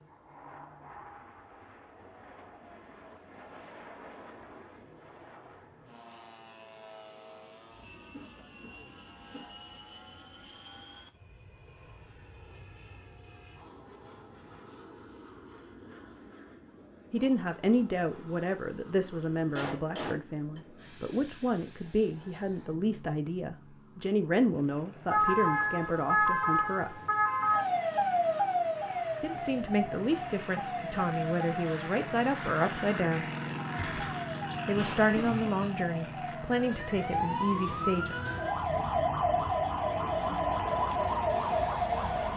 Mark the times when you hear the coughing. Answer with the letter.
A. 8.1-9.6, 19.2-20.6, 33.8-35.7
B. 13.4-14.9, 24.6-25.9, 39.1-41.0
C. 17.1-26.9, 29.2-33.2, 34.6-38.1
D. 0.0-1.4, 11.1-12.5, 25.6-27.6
A.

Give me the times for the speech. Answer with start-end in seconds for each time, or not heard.
17.1-26.9, 29.2-33.2, 34.6-38.1.